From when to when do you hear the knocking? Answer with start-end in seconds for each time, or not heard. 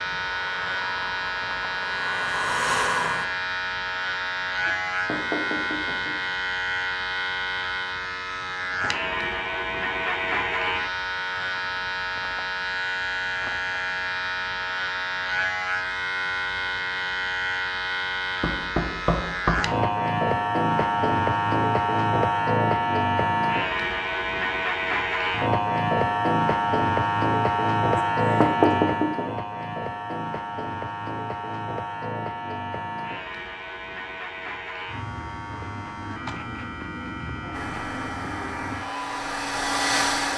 4.7-6.2, 18.4-19.8, 27.9-29.3.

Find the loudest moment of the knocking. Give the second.
29 s.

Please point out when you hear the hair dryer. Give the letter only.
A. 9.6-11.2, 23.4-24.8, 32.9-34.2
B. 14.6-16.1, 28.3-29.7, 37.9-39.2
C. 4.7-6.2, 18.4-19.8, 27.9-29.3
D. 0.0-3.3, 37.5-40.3
D.